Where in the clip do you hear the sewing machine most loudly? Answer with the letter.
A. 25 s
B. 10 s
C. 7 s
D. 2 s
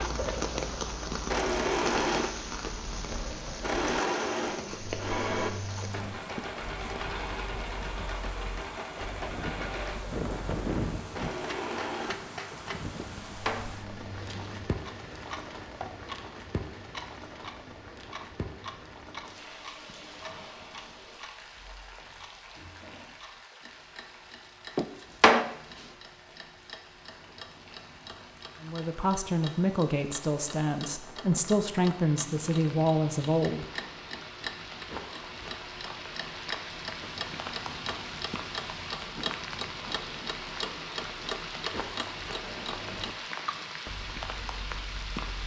D.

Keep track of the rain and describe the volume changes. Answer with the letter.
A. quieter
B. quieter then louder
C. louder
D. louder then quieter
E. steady
B.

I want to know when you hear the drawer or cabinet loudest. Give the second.
25 s.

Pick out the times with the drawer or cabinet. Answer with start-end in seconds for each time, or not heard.
12.9-14.7, 24.8-25.6.